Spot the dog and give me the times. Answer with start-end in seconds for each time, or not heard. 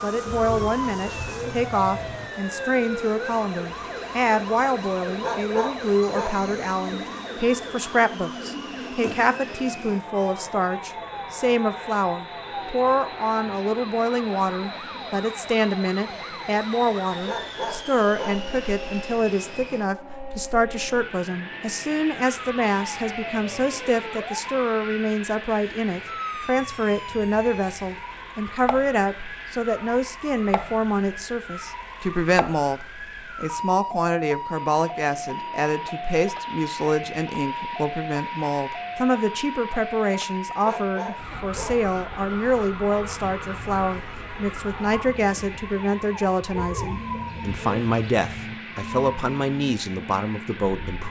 5.2-6.5, 17.2-18.6, 40.6-41.9.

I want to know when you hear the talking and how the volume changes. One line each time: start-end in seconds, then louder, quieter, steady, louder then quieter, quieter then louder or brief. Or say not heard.
0.0-51.0 steady.